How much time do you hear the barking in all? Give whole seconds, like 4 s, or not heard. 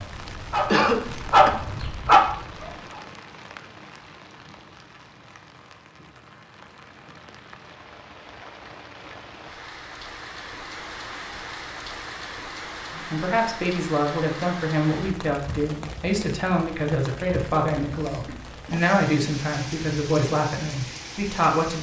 3 s.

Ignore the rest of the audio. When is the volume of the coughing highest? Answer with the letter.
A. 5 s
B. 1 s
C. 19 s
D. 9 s
B.